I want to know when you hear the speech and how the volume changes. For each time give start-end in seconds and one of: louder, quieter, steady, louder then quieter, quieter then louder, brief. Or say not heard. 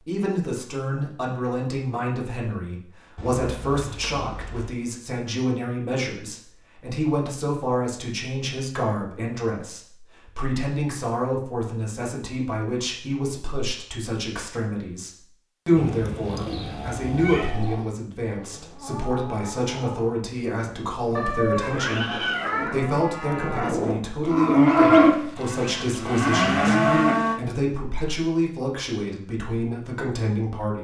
0.1-30.7 steady.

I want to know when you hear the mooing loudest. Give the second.
25 s.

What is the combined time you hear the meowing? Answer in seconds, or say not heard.
5 s.